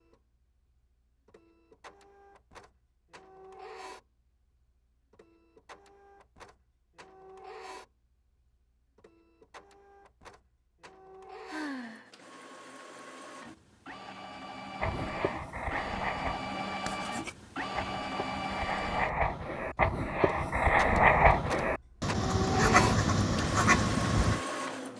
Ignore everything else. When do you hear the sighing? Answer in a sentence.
You can hear the sighing from 11.4 to 12.1 s.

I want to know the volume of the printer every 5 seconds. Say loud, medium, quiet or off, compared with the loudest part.
quiet, quiet, quiet, loud, loud.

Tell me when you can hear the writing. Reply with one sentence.
You can hear the writing from 14.8 to 24.4 s.